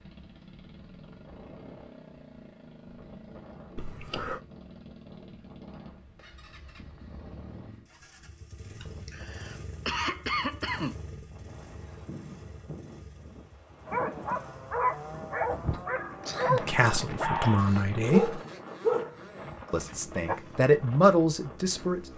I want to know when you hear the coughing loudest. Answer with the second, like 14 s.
10 s.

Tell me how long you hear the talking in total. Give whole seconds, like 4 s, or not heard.
4 s.